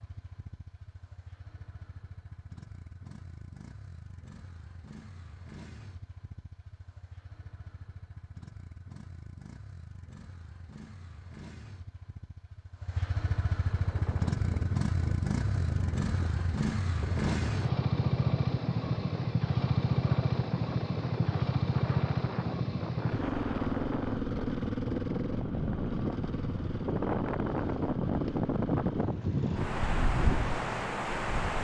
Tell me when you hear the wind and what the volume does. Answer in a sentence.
The wind can be heard from 13.6 to 31.5 s, getting louder.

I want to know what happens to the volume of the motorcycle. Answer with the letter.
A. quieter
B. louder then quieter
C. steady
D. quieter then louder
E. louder
B.